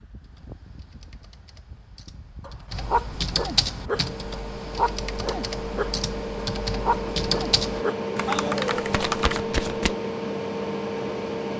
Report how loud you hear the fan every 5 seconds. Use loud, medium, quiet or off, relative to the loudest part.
quiet, loud, loud.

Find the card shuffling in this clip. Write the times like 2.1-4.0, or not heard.
8.8-9.9.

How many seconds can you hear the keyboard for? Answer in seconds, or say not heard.
9 s.